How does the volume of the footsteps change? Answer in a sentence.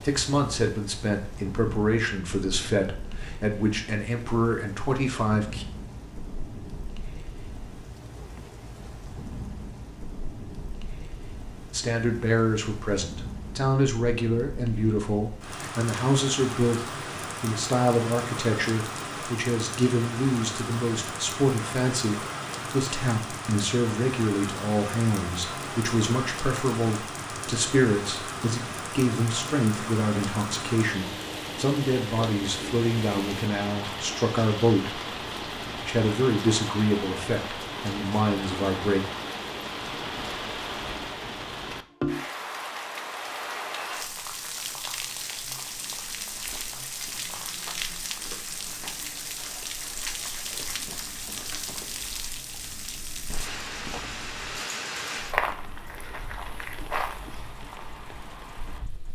The volume of the footsteps goes up.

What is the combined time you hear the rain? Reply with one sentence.
You can hear the rain for 59 seconds altogether.